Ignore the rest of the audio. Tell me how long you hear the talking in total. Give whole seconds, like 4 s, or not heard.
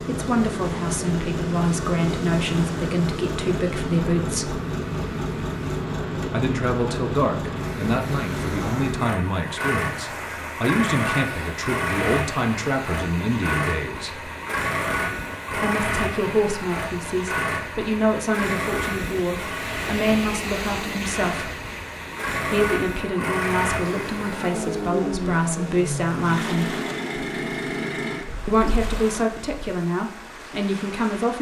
26 s.